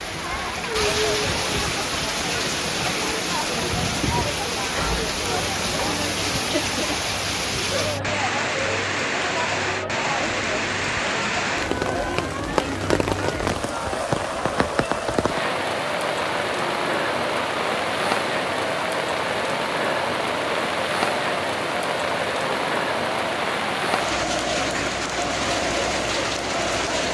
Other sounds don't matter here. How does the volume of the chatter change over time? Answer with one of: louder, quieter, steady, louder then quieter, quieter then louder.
steady.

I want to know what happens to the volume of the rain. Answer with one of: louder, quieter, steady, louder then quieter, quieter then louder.
steady.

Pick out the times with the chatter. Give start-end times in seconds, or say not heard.
0.0-27.0.